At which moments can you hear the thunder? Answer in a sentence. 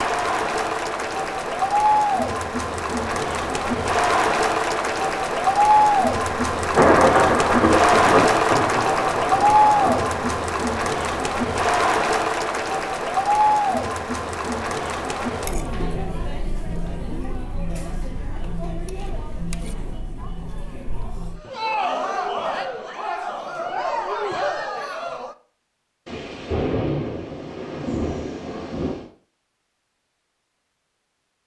You can hear the thunder from 5.8 to 10.4 s and from 26.1 to 29.1 s.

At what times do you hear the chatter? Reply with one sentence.
The chatter can be heard from 0.0 to 25.4 s.